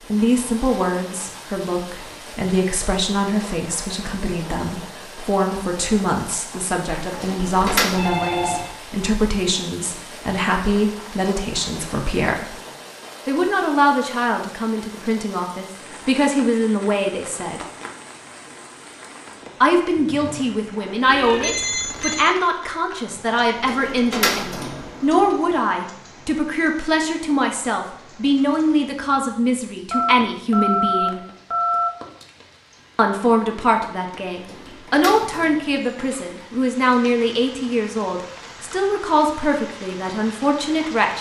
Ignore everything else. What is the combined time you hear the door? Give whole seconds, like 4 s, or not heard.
5 s.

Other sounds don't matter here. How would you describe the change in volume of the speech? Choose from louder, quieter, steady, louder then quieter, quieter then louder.
steady.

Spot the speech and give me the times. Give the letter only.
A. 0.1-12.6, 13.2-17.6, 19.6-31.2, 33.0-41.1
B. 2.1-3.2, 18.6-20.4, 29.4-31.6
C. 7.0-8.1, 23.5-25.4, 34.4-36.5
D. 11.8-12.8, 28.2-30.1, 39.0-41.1
A.